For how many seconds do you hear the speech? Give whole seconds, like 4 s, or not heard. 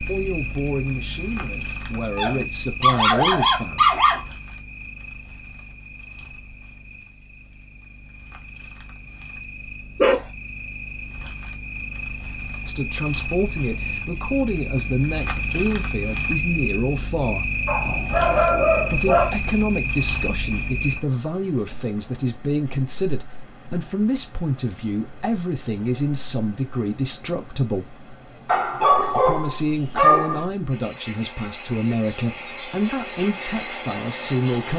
23 s.